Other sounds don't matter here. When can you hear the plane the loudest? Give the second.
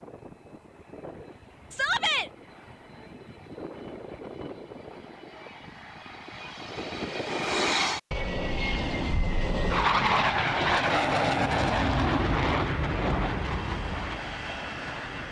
10 s.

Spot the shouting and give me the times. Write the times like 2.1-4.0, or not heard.
1.7-2.3.